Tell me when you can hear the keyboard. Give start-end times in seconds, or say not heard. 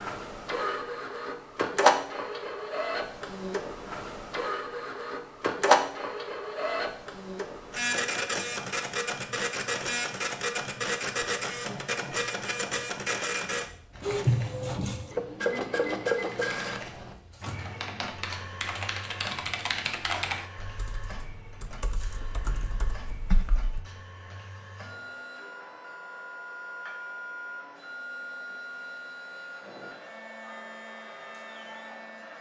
13.9-23.8.